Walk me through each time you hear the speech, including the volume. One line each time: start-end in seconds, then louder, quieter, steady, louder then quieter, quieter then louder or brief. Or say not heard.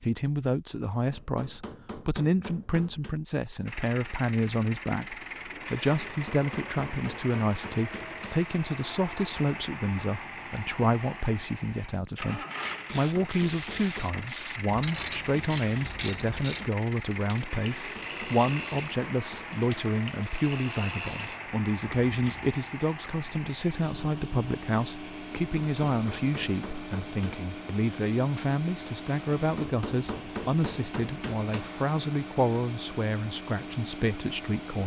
0.0-34.8 steady.